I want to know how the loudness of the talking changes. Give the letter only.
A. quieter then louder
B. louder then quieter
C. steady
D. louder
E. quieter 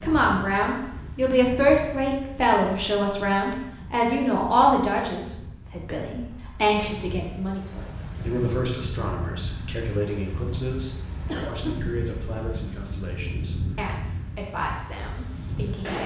E.